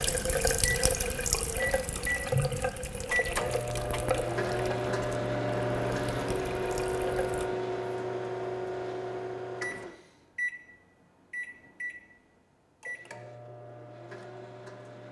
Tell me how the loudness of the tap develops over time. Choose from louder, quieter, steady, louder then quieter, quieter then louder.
quieter.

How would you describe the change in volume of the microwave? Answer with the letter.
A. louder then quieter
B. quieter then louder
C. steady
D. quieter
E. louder
D.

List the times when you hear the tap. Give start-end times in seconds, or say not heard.
0.0-7.5.